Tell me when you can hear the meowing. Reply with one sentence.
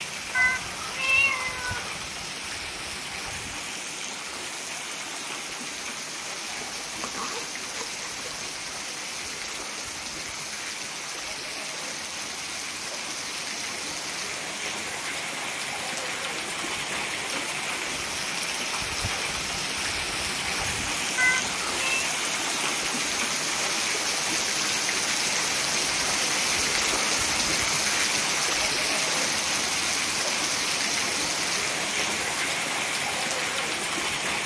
The meowing can be heard from 0.3 to 2.0 s and from 21.1 to 22.1 s.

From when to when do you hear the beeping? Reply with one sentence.
You can't hear the beeping here.